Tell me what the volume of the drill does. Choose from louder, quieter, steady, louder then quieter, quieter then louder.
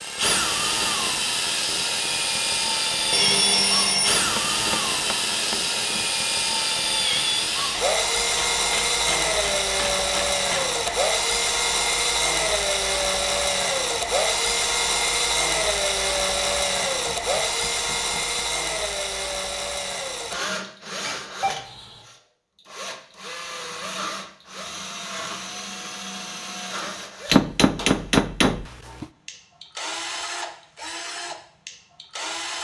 quieter.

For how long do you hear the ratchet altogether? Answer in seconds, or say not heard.
not heard.